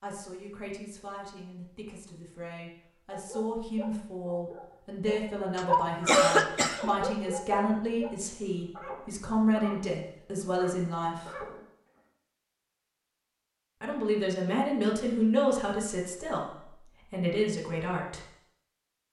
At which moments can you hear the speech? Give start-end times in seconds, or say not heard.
0.0-11.4, 13.8-18.2.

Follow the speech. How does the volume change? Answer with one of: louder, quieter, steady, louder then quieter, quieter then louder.
louder.